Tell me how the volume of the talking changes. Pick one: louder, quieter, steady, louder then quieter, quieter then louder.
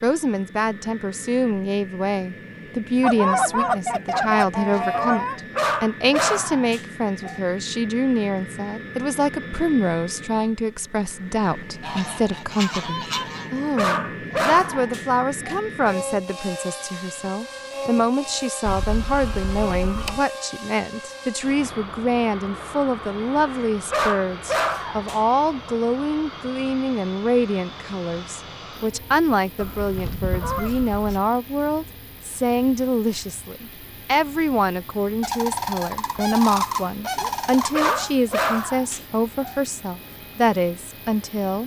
steady.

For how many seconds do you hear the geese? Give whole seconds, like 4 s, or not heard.
10 s.